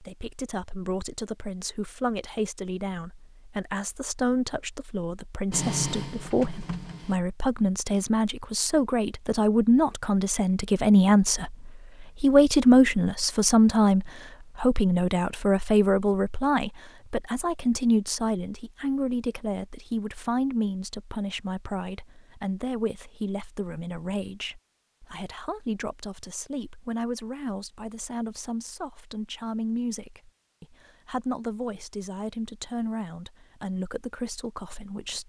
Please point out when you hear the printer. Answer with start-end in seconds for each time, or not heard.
5.5-7.2.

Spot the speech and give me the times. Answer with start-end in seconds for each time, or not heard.
0.0-35.2.